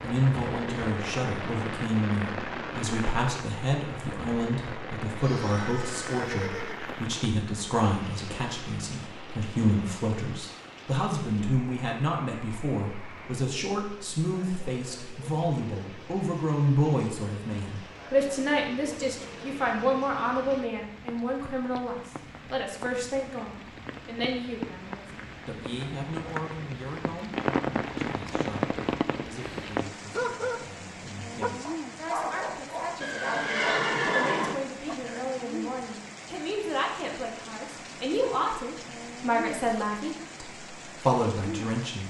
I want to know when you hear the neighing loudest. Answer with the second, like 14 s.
34 s.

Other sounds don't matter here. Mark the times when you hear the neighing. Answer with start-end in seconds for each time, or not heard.
5.2-7.1, 33.0-34.5.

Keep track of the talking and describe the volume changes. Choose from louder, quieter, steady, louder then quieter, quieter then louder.
quieter then louder.